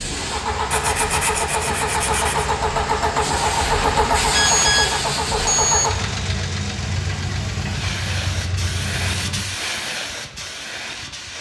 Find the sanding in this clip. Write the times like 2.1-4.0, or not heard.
0.7-2.5.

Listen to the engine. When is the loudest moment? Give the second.
4 s.